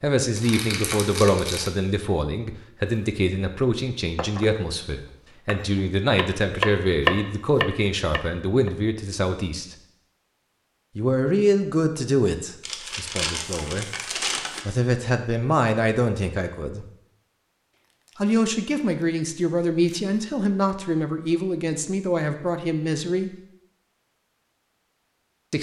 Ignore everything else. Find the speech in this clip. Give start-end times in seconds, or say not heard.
0.0-9.8, 10.9-13.8, 14.7-16.9, 18.1-23.3.